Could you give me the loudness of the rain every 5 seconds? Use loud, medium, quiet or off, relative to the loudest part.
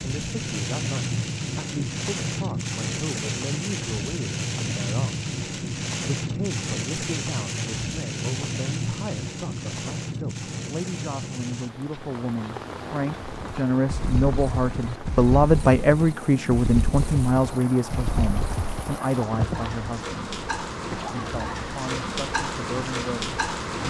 loud, loud, medium, medium, loud.